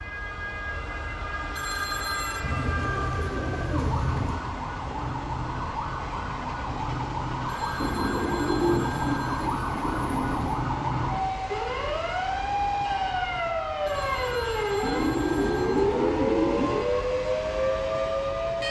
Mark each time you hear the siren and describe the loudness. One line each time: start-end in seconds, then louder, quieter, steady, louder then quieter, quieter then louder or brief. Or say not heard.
0.0-18.6 louder.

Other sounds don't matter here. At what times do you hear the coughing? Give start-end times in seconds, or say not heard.
not heard.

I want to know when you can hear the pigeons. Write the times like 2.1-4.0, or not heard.
2.4-4.4, 7.8-10.7, 14.8-16.9.